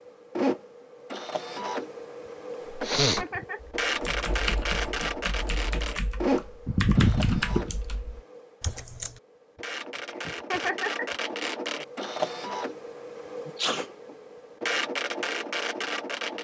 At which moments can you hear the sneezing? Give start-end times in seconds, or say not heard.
2.9-3.5, 6.7-7.8, 13.4-13.9.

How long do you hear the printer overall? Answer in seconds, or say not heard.
16 s.